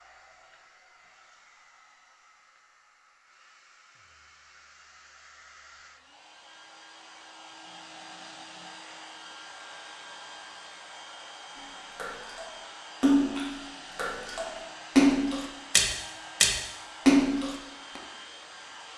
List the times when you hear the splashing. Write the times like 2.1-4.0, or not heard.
11.9-18.0.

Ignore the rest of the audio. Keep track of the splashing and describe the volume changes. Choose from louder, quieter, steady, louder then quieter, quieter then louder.
quieter then louder.